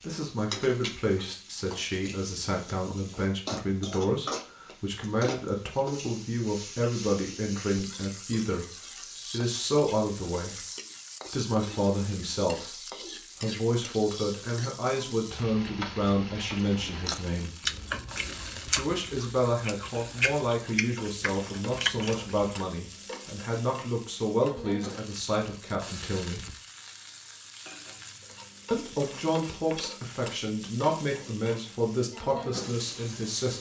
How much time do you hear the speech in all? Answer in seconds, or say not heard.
28 s.